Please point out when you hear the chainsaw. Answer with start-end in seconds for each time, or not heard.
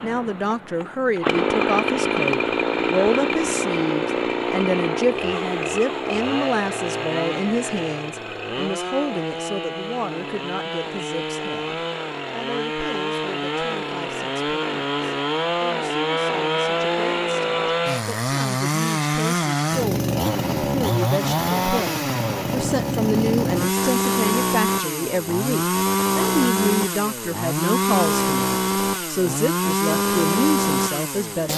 0.0-31.5.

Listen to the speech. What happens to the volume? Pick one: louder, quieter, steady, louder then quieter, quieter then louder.
quieter then louder.